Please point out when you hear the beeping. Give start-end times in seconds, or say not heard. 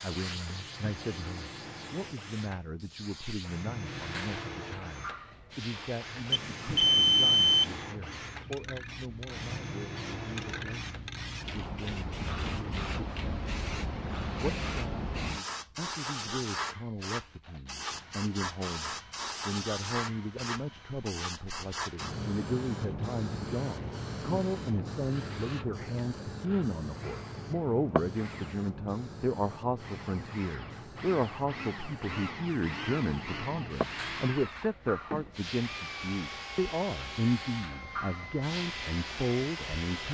6.3-7.8.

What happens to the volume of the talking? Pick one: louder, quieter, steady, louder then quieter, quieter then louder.
louder.